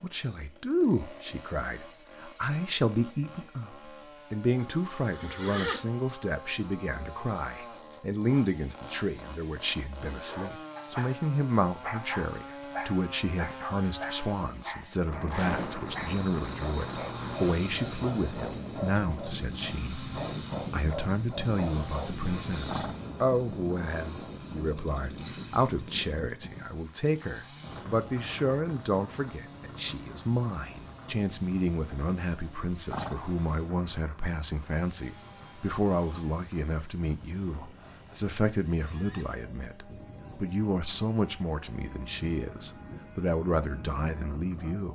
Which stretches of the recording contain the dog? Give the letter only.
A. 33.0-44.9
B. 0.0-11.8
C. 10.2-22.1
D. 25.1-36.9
C.